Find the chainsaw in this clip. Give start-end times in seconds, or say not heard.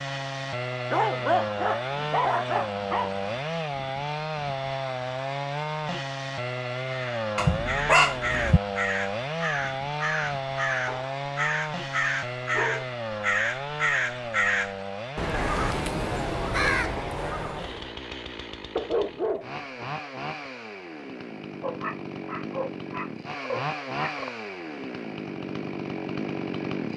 0.0-26.9.